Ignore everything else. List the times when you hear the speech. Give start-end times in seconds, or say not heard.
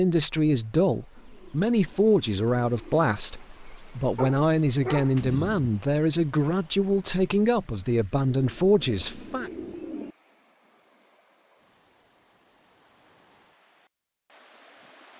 0.0-9.5.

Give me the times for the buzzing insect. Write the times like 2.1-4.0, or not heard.
not heard.